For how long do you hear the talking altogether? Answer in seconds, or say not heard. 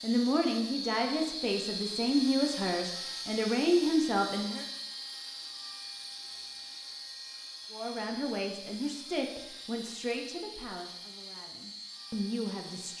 10 s.